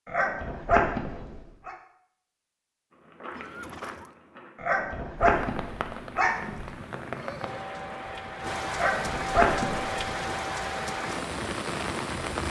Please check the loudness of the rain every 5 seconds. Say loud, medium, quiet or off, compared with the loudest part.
off, loud, loud.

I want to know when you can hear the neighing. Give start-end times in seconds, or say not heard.
3.3-4.2, 6.5-7.7.